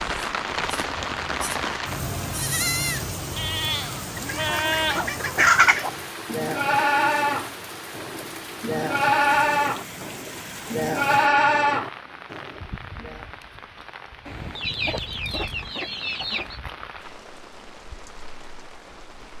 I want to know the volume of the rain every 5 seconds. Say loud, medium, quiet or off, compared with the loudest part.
loud, medium, medium, quiet.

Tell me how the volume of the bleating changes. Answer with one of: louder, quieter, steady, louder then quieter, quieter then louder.
louder.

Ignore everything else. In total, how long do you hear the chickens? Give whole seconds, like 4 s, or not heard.
4 s.